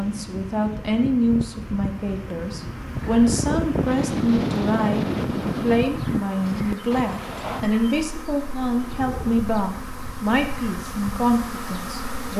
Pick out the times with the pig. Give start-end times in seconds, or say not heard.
not heard.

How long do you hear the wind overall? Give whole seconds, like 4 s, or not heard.
12 s.